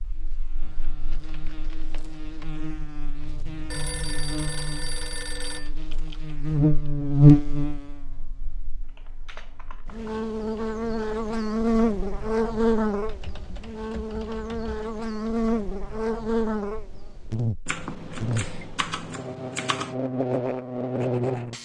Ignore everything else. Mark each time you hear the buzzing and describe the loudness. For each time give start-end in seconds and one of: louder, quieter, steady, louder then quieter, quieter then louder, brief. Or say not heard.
0.0-21.5 louder then quieter.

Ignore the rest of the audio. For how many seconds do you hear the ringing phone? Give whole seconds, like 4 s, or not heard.
3 s.